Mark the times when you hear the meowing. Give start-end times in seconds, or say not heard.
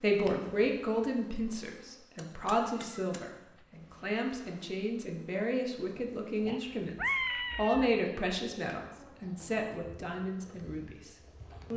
2.6-4.1, 6.5-8.0.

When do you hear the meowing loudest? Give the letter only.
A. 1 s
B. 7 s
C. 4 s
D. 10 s
B.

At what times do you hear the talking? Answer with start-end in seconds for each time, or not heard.
0.0-11.7.